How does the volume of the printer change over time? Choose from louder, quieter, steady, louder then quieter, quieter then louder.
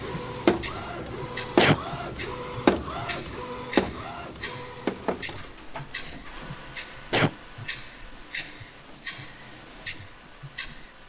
quieter.